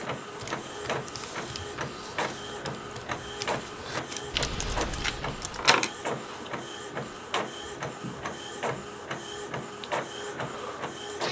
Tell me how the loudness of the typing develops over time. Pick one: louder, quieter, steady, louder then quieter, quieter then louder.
louder.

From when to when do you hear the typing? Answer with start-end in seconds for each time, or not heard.
0.3-5.7.